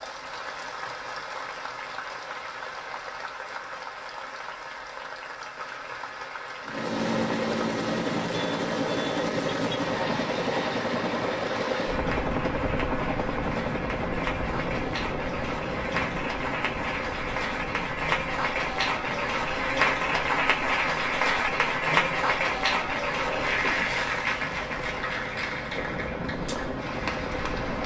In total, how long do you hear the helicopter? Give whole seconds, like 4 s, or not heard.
21 s.